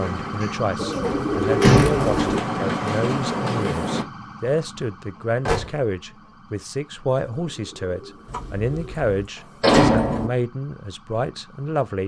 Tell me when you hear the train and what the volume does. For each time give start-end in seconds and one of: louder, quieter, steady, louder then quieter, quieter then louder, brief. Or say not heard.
0.0-4.0 louder.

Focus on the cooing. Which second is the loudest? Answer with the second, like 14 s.
2 s.